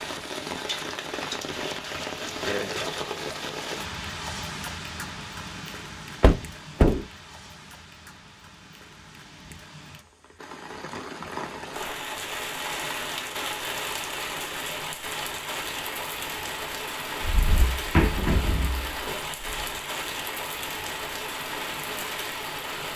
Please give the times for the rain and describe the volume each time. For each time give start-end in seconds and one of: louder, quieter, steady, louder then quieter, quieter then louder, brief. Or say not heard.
0.0-22.9 quieter then louder.